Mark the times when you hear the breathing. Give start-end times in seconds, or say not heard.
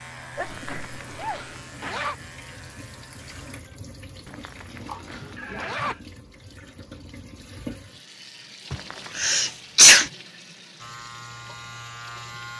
not heard.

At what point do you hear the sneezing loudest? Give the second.
10 s.